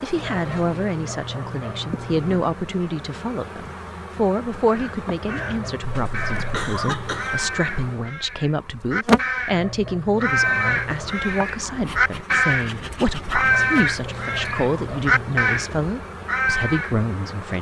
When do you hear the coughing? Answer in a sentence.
The coughing can be heard from 5.8 to 7.5 s.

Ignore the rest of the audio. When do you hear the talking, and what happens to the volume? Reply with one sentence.
The talking can be heard from 0.0 to 17.5 s, at a steady volume.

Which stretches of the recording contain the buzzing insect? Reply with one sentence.
The buzzing insect can be heard from 0.0 to 17.5 s.